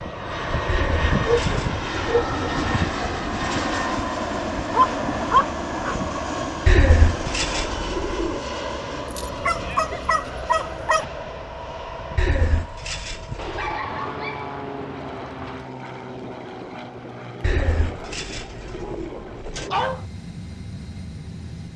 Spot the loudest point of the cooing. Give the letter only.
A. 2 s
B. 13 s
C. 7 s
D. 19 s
C.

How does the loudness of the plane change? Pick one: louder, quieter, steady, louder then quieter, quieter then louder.
quieter.